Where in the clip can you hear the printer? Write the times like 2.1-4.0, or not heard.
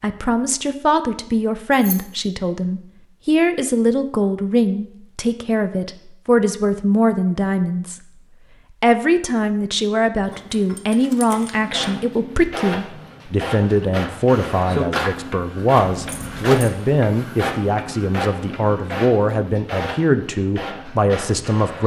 11.6-21.8.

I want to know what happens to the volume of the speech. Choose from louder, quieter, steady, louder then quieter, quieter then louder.
steady.